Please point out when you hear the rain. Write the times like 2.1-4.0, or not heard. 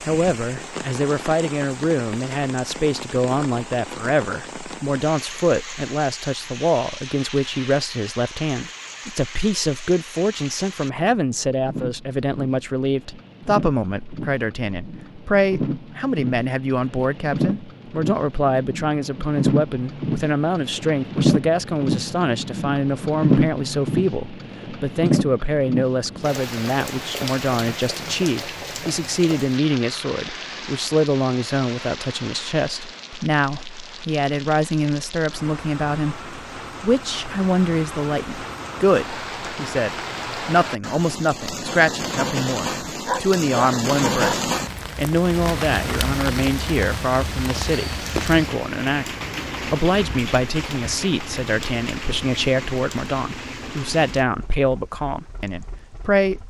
0.0-56.4.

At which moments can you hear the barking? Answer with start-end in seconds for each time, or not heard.
43.0-44.4.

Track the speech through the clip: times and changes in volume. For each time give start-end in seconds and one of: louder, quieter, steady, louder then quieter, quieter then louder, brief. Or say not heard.
0.1-56.4 steady.